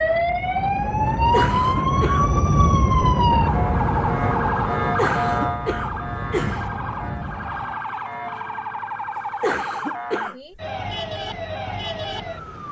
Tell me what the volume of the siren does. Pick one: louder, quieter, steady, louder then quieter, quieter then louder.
quieter.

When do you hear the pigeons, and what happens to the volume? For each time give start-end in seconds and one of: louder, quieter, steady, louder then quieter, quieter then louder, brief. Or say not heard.
not heard.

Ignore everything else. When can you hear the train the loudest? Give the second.
3 s.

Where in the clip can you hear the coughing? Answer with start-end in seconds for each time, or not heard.
1.1-2.2, 5.0-6.7, 9.2-10.3.